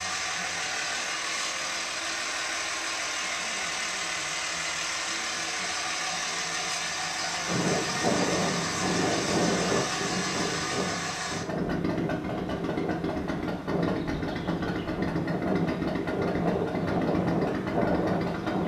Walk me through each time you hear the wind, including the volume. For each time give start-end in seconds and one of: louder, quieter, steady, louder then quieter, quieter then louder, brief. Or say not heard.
7.5-18.6 quieter then louder.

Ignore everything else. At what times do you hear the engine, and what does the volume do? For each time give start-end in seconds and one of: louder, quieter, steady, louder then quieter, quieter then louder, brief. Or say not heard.
0.0-18.6 steady.